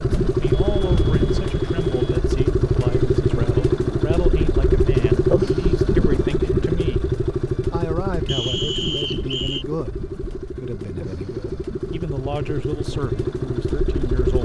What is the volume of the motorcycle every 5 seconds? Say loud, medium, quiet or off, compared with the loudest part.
loud, loud, medium.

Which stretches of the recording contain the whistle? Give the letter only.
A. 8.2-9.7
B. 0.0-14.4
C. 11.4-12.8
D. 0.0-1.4
A.